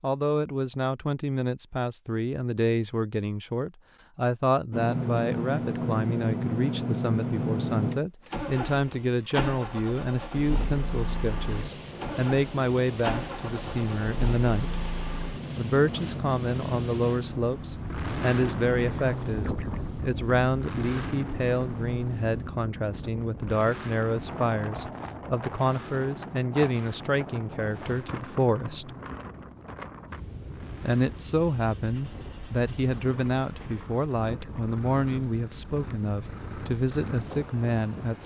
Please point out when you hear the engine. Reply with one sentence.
The engine can be heard from 4.7 to 38.2 s.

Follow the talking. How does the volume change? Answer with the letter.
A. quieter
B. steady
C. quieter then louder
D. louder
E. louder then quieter
B.